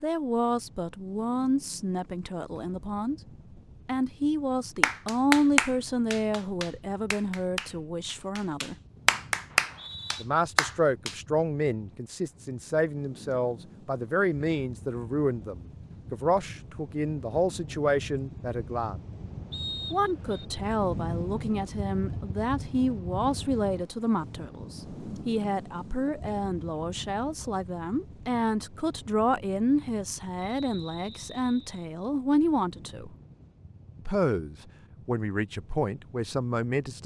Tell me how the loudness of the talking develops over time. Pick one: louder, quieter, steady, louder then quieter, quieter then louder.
steady.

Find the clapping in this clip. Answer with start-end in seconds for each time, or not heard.
4.8-11.2.